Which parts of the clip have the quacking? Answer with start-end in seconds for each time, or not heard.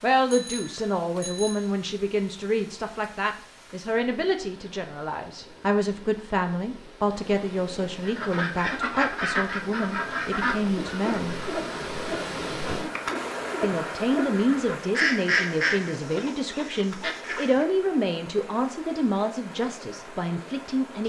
8.1-17.6.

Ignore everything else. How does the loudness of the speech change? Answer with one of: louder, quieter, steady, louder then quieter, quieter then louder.
steady.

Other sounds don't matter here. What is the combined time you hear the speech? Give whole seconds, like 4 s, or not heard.
19 s.